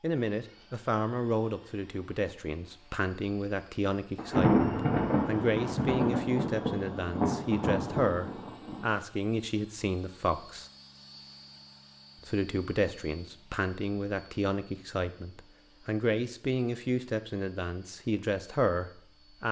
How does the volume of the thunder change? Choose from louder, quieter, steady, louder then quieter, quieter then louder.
quieter.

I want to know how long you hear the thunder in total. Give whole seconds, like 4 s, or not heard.
5 s.